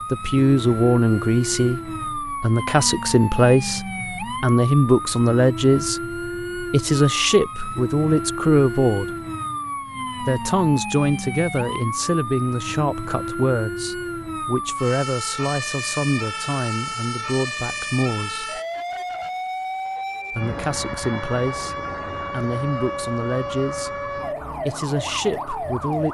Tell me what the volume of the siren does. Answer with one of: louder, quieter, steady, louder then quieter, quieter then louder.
steady.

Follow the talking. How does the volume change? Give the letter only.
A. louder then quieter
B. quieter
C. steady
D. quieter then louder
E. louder
B.